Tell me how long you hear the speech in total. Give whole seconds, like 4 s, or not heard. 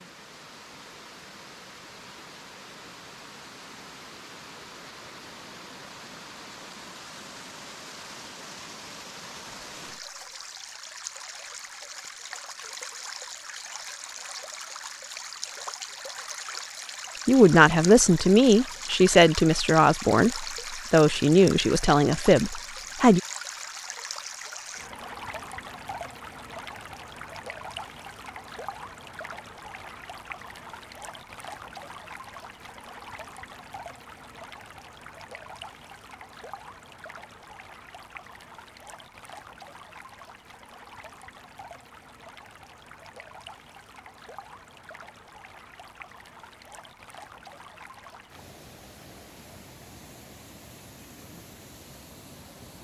6 s.